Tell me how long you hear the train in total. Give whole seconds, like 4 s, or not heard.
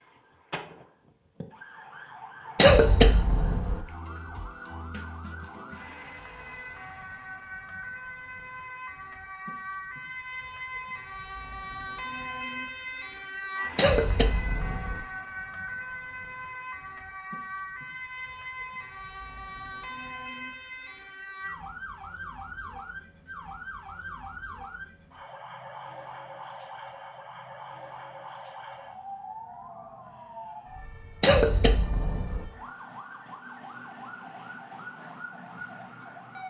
not heard.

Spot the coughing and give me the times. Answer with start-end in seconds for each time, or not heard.
2.5-3.9, 13.8-15.0, 31.2-32.5.